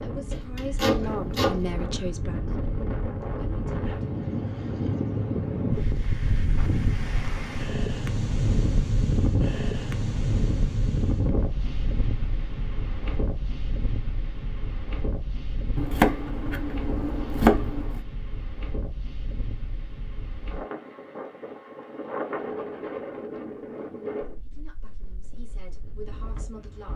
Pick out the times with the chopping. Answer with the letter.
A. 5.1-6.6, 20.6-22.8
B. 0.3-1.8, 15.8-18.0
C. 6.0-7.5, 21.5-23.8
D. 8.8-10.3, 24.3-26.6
B.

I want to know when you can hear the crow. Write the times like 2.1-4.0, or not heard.
not heard.